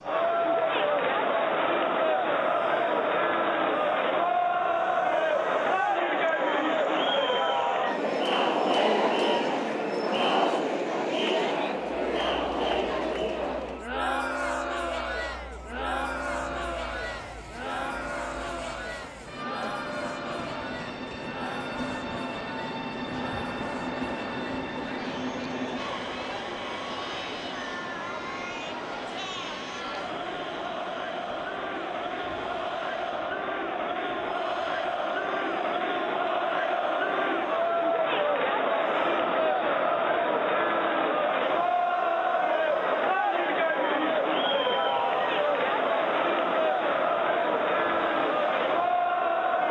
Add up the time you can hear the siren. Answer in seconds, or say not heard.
not heard.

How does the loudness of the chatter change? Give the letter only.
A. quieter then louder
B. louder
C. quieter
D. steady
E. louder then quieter
A.